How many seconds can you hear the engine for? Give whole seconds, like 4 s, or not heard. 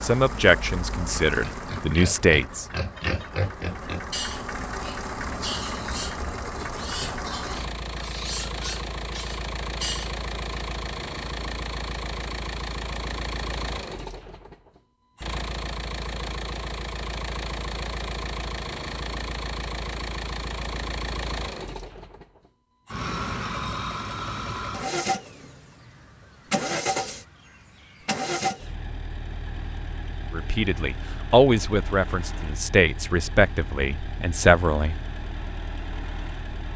37 s.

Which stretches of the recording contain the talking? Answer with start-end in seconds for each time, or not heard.
0.0-2.6, 30.3-35.0.